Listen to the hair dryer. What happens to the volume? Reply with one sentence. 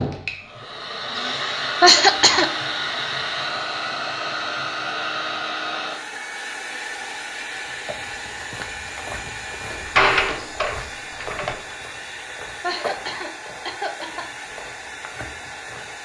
The volume of the hair dryer goes down.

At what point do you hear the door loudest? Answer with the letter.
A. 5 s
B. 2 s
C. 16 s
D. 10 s
D.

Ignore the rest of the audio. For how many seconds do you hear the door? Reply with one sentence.
The door can be heard for 2 seconds in total.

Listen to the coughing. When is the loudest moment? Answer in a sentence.
The volume of the coughing peaks at 2 seconds.